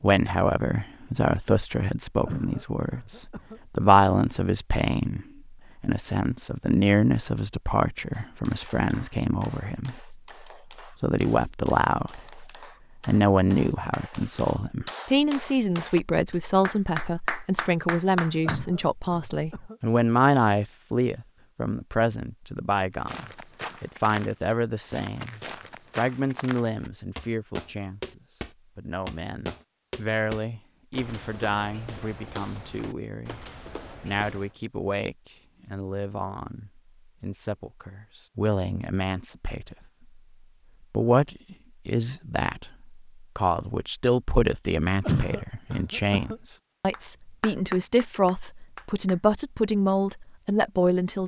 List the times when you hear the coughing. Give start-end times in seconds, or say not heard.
2.2-3.6, 18.4-19.8, 45.0-46.4.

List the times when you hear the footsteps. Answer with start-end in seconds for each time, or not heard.
22.9-34.5.